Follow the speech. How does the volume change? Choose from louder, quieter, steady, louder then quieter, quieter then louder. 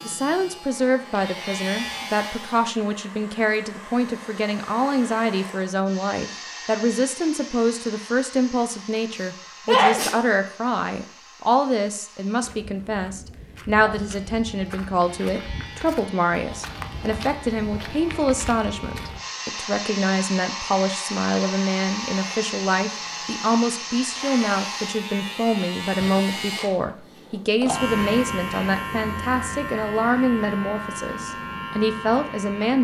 steady.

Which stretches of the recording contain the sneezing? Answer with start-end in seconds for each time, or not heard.
9.2-10.2.